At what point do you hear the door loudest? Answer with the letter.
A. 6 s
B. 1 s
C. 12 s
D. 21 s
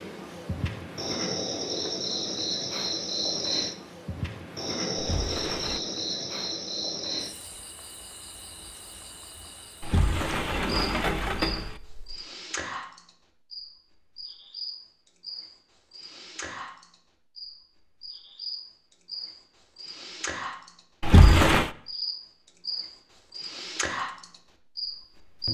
D.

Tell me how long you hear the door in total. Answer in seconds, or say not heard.
4 s.